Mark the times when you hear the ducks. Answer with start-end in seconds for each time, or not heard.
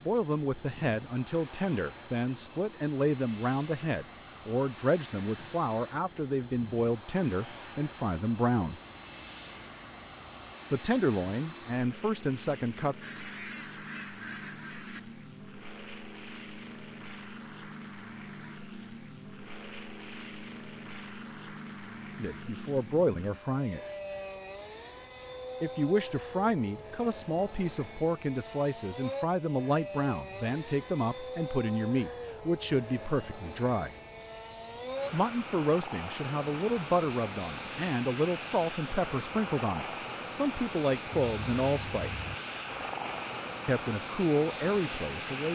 13.0-15.0, 41.1-42.4.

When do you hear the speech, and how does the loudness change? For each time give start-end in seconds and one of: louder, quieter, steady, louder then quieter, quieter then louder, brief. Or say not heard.
0.0-8.8 steady
10.7-12.9 brief
22.1-23.8 brief
25.6-34.0 steady
35.1-42.2 steady
43.6-45.5 brief.